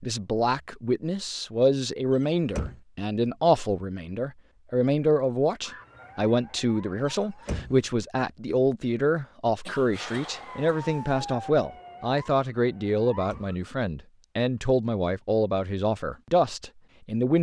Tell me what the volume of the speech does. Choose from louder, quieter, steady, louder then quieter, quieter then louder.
steady.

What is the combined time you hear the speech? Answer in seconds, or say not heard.
17 s.